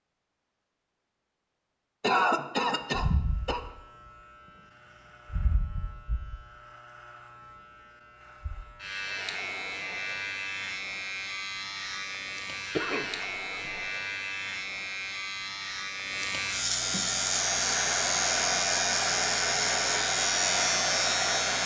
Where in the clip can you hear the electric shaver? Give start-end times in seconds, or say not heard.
2.9-21.6.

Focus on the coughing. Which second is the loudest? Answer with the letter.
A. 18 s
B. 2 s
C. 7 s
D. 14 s
B.